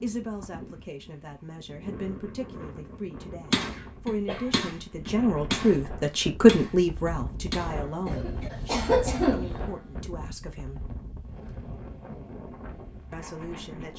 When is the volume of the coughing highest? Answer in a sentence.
The volume of the coughing peaks at 9 seconds.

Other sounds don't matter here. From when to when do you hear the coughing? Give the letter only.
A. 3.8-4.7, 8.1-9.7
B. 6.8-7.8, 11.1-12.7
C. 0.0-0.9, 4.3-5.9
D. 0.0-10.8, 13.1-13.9
A.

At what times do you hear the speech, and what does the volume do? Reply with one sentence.
The speech can be heard from 0.0 to 10.8 s, getting louder then quieter; and briefly from 13.1 to 13.9 s.